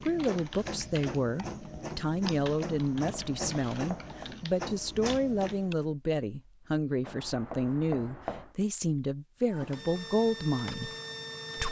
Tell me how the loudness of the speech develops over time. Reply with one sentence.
The loudness of the speech stays about the same.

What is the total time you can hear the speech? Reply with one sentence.
The speech can be heard for 11 seconds in total.